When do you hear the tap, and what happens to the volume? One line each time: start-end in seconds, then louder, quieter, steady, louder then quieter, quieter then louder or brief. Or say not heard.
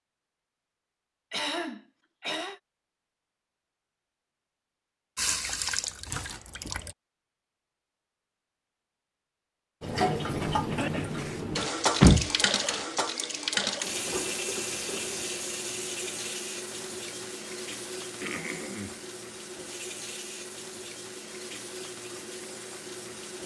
5.2-7.0 brief
9.8-23.4 quieter.